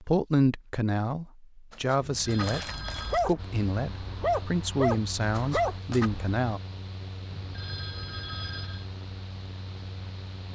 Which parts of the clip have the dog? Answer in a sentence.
You can hear the dog from 2.6 to 6.4 s.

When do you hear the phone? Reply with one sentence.
The phone can be heard from 2.0 to 3.2 s and from 7.3 to 8.8 s.